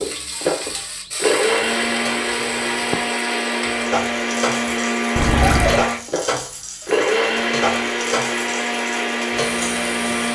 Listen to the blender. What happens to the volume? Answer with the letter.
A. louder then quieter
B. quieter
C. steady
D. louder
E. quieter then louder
C.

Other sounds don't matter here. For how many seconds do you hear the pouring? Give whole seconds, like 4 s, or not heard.
3 s.